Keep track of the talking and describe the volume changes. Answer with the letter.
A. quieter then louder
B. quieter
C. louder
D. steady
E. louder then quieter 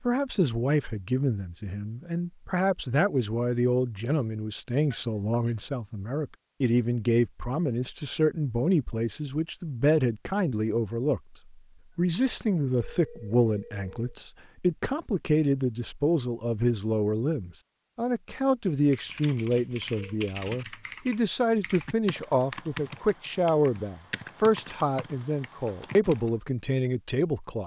D.